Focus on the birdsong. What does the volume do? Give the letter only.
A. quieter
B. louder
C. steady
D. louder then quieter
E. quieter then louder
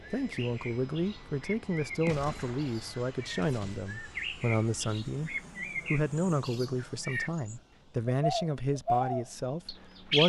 B.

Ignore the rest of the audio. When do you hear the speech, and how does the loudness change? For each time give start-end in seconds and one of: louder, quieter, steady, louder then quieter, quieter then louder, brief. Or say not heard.
0.1-10.2 steady.